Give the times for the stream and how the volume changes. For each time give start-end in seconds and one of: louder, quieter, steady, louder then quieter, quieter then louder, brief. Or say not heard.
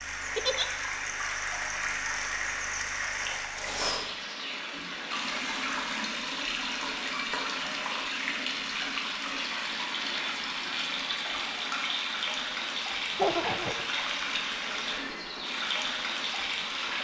0.0-17.0 steady.